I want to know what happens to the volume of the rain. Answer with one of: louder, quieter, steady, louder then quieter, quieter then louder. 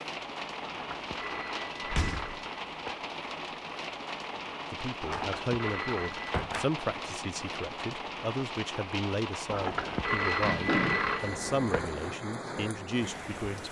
steady.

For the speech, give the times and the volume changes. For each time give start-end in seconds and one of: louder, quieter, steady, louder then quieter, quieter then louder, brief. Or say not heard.
4.7-13.6 steady.